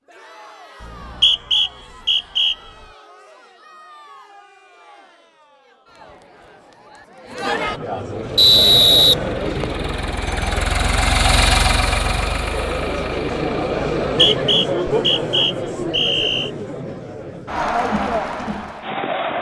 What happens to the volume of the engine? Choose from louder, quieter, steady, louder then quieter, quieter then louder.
louder then quieter.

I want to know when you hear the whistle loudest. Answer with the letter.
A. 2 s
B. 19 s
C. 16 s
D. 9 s
D.